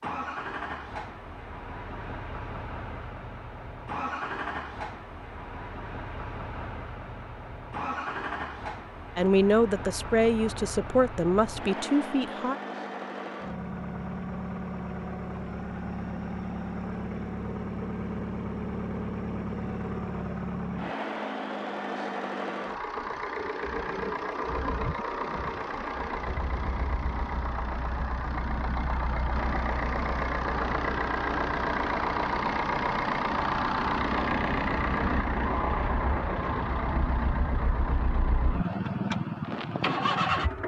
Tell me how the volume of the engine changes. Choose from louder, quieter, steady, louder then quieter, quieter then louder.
louder.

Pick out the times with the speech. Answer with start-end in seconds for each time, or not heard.
9.2-12.6.